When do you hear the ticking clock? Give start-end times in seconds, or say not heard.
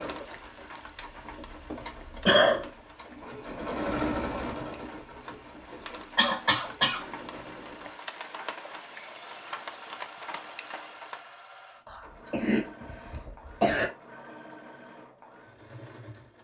not heard.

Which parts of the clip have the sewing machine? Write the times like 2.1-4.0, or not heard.
0.0-16.3.